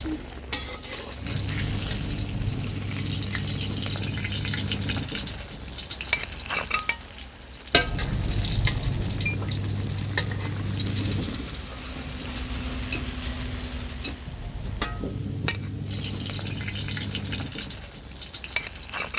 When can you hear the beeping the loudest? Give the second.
9 s.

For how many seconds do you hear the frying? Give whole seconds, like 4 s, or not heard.
19 s.